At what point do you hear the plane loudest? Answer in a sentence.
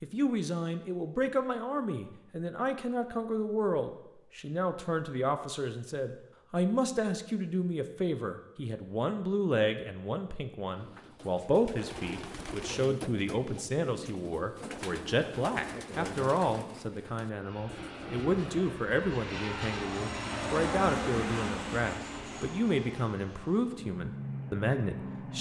The volume of the plane peaks at 21 seconds.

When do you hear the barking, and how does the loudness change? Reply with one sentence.
You can't hear the barking here.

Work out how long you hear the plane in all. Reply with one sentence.
The plane can be heard for 8 seconds in total.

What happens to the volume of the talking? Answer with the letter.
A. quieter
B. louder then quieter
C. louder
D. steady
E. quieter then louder
D.